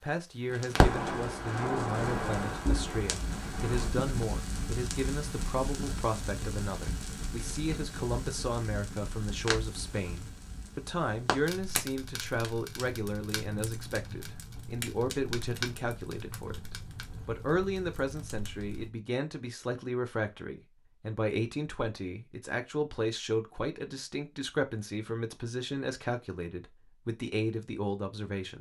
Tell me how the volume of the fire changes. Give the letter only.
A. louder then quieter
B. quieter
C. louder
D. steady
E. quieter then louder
B.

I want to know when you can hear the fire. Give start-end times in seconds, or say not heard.
0.5-18.9.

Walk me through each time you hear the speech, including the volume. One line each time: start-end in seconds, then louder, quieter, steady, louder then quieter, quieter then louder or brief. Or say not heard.
0.0-28.5 steady.